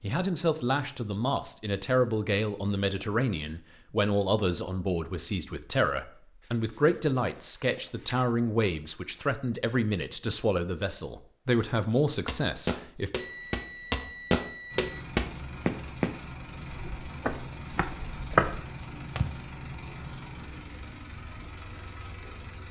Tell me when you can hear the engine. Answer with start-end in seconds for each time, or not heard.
14.7-22.6.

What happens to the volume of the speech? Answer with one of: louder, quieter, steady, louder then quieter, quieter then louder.
steady.